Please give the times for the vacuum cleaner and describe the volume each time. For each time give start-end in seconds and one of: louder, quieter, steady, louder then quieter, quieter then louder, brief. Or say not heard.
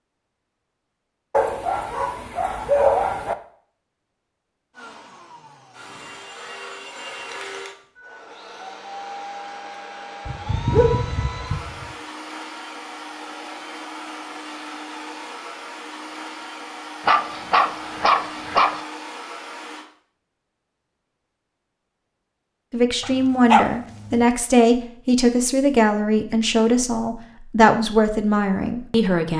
4.8-19.9 steady.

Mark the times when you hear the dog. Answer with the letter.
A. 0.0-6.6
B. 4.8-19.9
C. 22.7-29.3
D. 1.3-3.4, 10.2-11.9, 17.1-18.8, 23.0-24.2
D.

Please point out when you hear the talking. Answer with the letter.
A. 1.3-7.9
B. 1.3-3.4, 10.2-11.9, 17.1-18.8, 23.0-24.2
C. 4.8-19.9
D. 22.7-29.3
D.